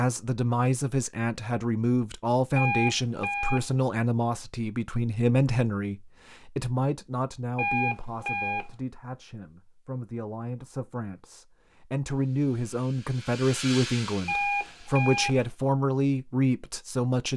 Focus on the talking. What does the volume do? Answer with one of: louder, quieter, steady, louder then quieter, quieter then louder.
quieter then louder.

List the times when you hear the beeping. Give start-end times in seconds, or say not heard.
2.5-3.8, 7.5-8.8, 14.2-15.5.